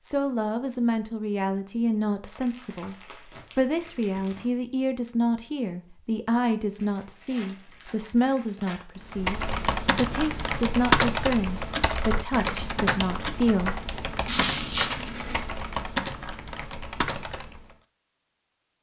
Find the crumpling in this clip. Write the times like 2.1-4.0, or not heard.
2.2-4.5, 6.8-8.8, 14.2-15.4.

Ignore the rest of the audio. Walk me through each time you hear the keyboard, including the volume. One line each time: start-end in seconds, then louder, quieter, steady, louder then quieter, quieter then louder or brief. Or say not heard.
9.1-17.8 quieter.